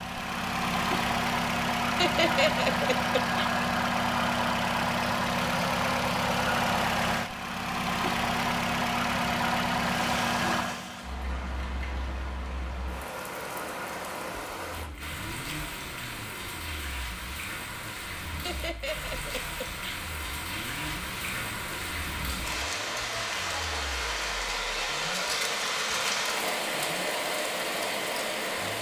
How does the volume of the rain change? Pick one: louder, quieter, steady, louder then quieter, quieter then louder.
louder.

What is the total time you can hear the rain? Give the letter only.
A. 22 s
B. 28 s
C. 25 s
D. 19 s
D.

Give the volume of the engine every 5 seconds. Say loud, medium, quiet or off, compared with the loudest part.
loud, loud, medium, quiet, quiet, quiet.